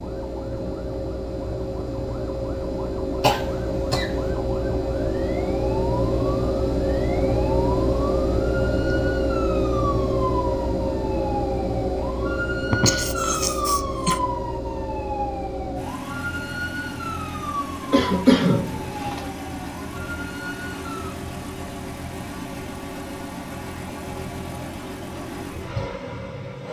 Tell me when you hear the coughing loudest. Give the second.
18 s.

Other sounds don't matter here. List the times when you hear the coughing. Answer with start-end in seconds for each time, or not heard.
3.2-4.3, 12.6-14.2, 17.9-19.3.